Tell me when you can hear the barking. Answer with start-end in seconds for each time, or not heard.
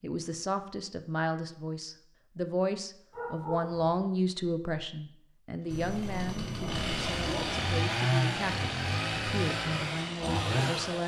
3.1-4.0, 5.7-7.6.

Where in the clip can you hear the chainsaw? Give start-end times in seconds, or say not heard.
5.7-11.0.